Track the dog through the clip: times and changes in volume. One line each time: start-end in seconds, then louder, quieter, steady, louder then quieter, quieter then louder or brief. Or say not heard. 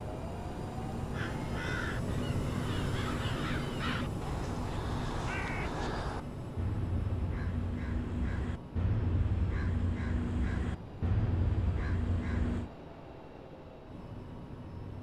not heard.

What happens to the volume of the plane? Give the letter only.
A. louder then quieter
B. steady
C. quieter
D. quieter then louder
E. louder
C.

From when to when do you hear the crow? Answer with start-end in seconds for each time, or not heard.
1.1-12.7.